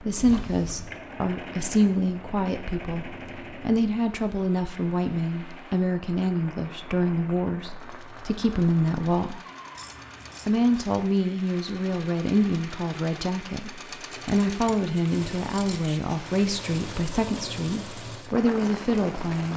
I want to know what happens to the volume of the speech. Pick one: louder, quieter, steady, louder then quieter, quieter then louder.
steady.